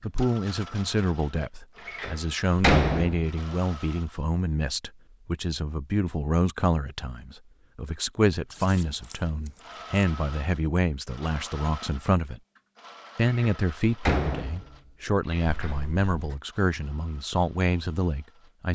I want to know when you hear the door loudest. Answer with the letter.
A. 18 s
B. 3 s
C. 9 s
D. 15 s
B.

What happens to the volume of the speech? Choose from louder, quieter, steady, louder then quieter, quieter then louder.
steady.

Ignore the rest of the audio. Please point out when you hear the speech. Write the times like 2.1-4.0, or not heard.
0.0-12.4, 13.2-18.6.